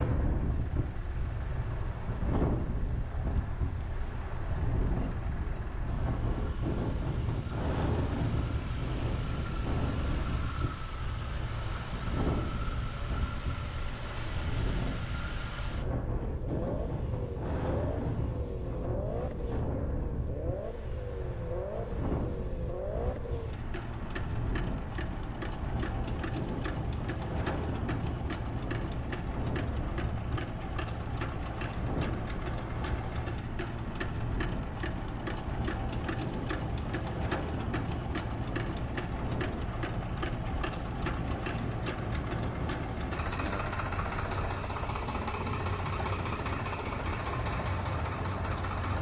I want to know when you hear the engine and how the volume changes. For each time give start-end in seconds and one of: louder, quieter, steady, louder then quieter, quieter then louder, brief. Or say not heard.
0.2-48.9 louder.